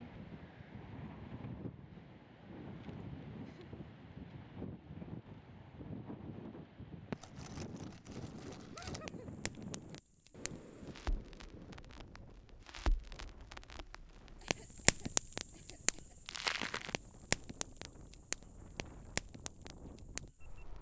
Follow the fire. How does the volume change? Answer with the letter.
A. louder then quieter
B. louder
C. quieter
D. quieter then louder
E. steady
A.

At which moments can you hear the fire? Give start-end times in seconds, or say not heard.
7.1-20.7.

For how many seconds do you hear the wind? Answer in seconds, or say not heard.
21 s.